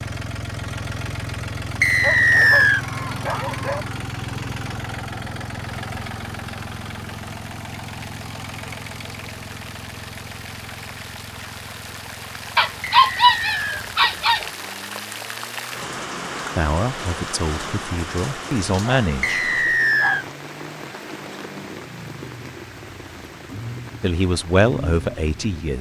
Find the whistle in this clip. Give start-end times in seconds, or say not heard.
1.8-2.9, 12.9-13.8, 19.2-20.2.